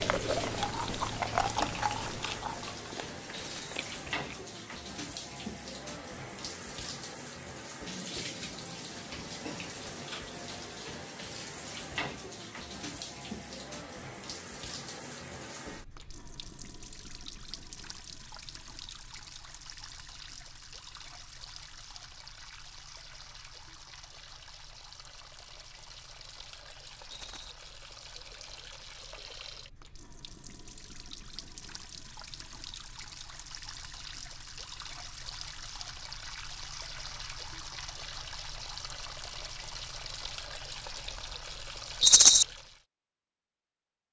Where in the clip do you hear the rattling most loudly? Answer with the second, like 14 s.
42 s.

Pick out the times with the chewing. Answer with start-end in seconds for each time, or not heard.
0.0-4.5.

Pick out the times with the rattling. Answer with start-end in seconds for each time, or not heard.
3.3-3.8, 27.1-27.6, 42.0-42.5.